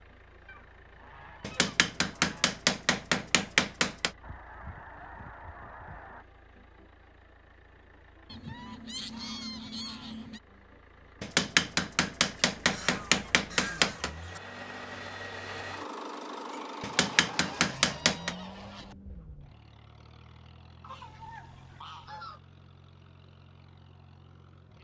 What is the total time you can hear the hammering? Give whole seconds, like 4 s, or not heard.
7 s.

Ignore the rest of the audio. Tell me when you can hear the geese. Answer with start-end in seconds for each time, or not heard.
0.5-2.5, 4.2-6.2, 8.2-10.4, 12.6-14.4, 17.1-18.9, 20.8-22.4.